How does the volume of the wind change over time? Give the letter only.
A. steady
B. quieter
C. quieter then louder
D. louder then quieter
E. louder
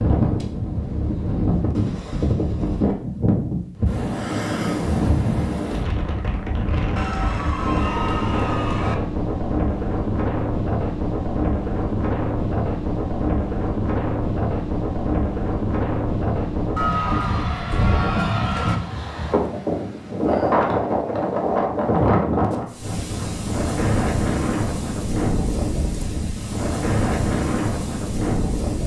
A.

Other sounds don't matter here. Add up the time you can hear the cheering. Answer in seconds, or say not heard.
4 s.